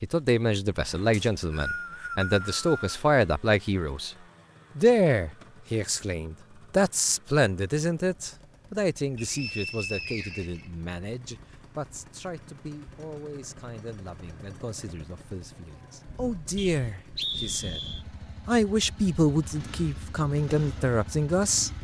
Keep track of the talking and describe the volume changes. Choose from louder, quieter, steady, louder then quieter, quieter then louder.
quieter then louder.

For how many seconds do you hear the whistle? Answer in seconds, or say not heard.
5 s.